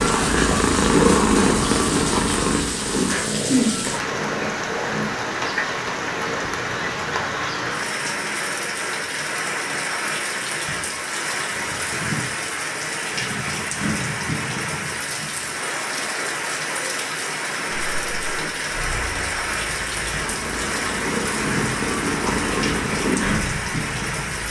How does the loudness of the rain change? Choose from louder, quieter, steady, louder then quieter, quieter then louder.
steady.